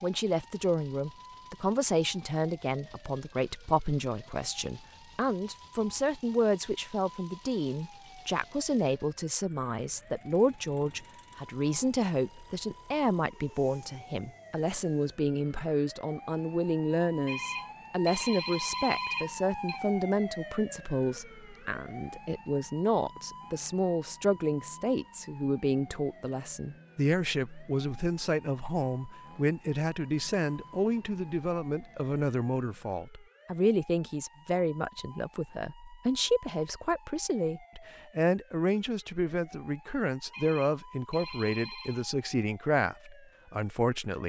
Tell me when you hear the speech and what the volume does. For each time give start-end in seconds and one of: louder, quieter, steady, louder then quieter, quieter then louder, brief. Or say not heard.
0.0-44.2 steady.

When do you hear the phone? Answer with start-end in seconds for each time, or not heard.
17.2-19.8, 40.3-42.1.